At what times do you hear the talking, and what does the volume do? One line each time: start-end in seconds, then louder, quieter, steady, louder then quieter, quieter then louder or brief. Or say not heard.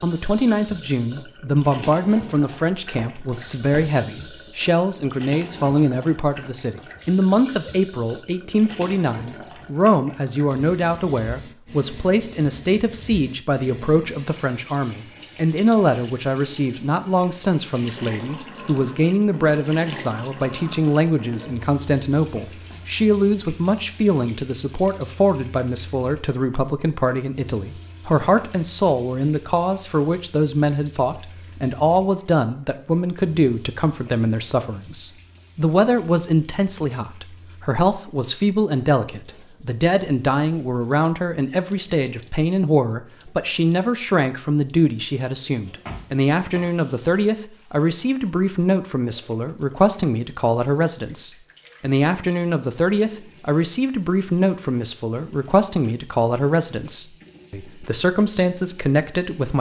0.0-59.5 steady.